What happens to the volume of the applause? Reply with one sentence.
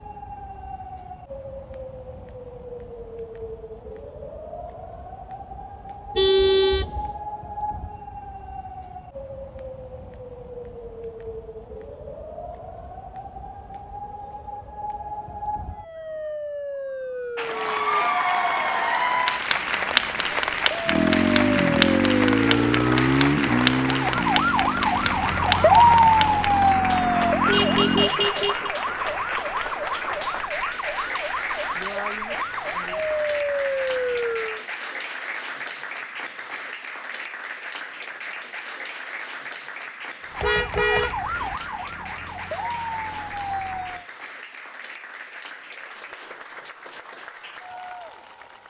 The volume of the applause goes down.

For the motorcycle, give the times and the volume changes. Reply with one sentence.
You can hear the motorcycle from 20.9 to 28.1 s, getting quieter then louder.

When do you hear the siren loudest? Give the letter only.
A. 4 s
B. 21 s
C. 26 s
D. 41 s
C.